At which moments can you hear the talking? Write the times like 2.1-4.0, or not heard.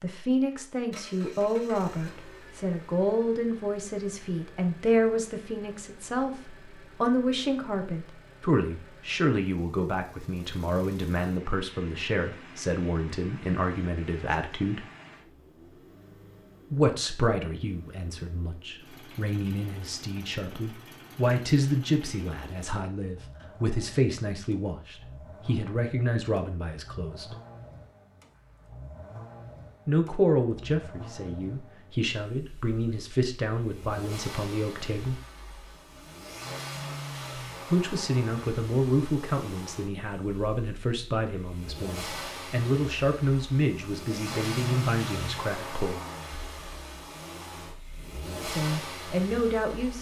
0.0-14.8, 16.7-27.4, 29.9-35.2, 37.7-46.0, 48.5-49.9.